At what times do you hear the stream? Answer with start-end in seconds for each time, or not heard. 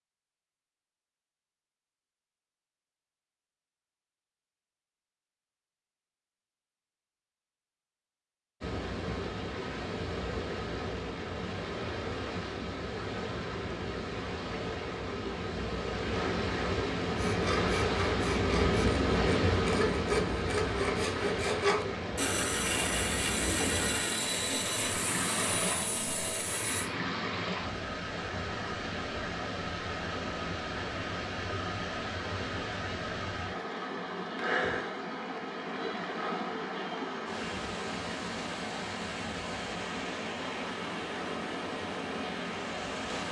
8.6-43.2.